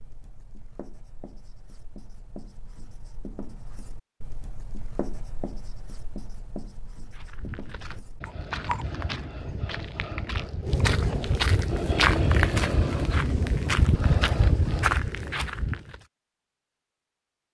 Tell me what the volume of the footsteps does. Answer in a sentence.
The loudness of the footsteps goes up.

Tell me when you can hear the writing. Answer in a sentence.
The writing can be heard from 0.0 to 8.9 s.